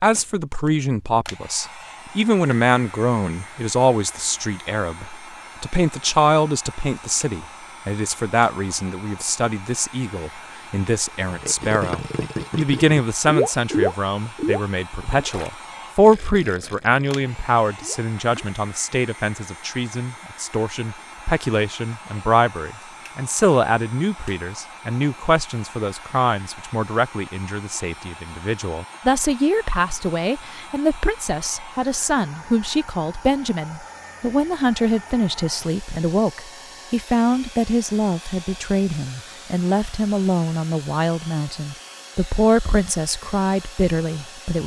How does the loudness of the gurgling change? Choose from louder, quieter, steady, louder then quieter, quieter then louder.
louder then quieter.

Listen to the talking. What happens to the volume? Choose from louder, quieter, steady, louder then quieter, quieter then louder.
steady.